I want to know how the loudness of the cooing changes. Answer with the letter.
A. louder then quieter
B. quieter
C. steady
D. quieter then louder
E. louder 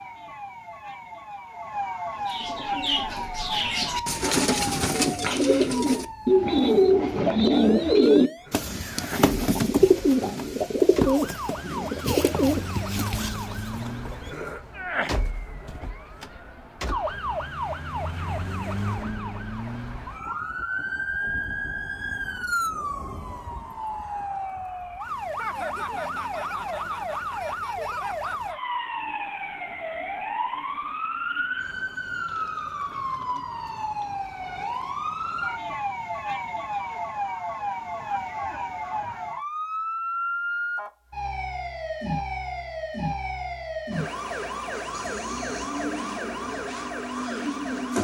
A.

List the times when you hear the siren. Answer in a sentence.
You can hear the siren from 0.0 to 47.9 s.